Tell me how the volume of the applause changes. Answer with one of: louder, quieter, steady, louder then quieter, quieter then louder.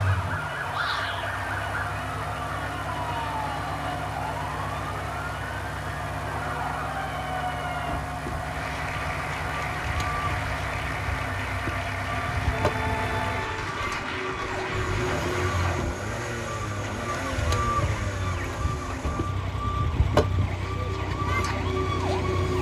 steady.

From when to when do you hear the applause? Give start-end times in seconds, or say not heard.
8.4-15.9.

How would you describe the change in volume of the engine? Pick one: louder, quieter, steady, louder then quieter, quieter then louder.
steady.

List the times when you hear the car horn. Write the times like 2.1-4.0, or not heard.
12.5-13.8.